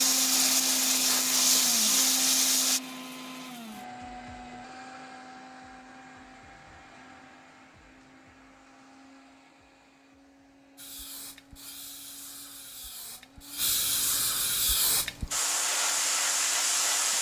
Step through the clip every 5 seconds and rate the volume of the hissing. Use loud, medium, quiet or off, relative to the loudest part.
loud, off, medium, loud.